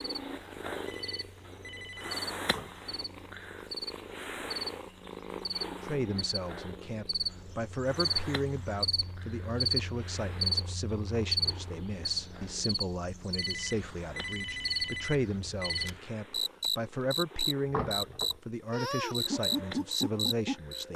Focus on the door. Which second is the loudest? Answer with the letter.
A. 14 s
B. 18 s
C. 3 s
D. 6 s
B.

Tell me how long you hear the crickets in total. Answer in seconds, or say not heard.
21 s.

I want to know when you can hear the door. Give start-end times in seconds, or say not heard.
2.5-2.9, 17.6-18.4.